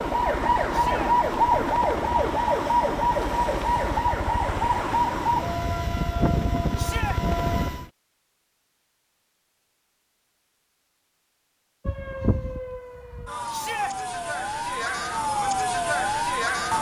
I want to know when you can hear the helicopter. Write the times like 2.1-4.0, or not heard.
0.0-7.9.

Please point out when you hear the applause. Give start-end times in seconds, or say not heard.
not heard.